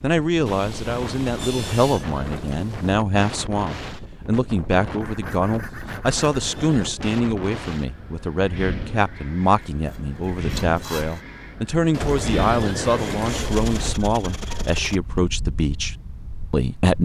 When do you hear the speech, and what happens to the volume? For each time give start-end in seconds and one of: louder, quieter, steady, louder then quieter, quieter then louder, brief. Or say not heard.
0.0-16.9 steady.